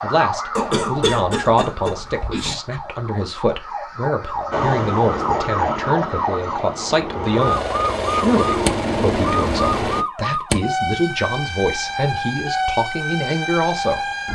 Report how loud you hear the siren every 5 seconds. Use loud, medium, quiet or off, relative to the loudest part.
medium, loud, loud.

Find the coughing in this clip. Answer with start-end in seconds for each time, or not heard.
0.6-2.5.